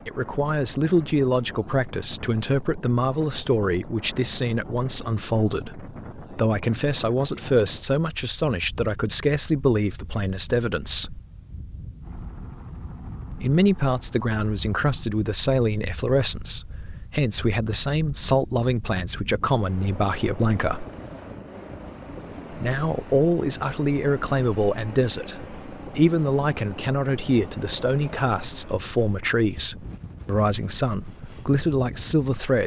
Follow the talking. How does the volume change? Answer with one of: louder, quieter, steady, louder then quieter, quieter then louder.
steady.